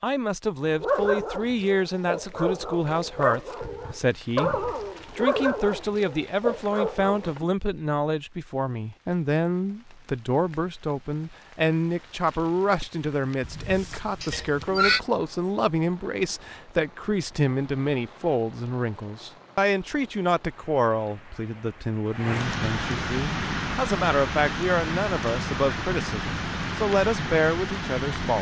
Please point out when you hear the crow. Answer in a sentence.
The crow can't be heard in this clip.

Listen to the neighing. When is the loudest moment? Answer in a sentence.
The loudest moment of the neighing is at 15 seconds.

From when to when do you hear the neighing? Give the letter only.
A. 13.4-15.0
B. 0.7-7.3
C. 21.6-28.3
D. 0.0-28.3
A.